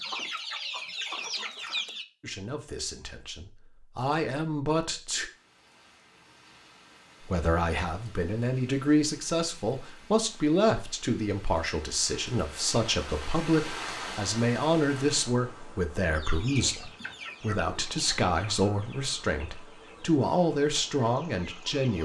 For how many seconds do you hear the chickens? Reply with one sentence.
You can hear the chickens for 8 seconds altogether.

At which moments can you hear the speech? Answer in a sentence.
You can hear the speech from 2.2 to 5.3 s and from 7.2 to 21.9 s.